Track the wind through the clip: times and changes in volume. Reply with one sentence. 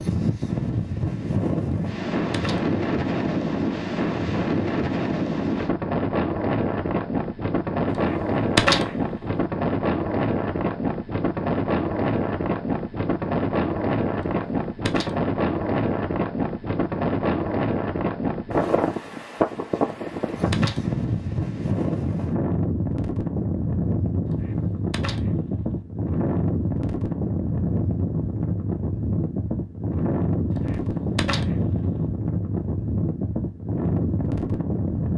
You can hear the wind from 0.0 to 35.1 s, at a steady volume.